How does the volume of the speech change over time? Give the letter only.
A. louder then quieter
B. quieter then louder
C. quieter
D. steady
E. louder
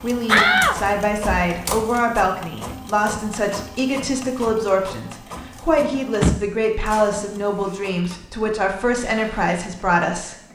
D.